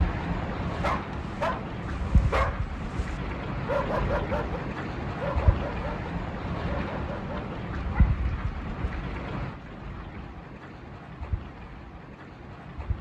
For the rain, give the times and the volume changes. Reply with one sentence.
The rain can be heard from 0.0 to 12.9 s, getting quieter.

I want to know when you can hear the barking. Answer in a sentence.
The barking can be heard from 0.7 to 8.1 s.